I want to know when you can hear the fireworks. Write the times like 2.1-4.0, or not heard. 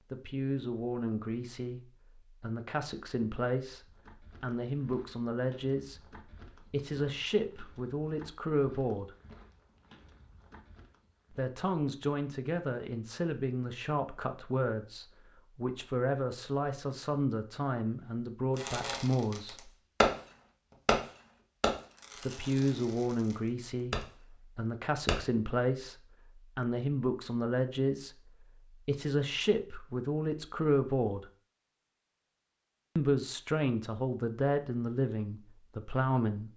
18.6-20.1, 21.6-24.1.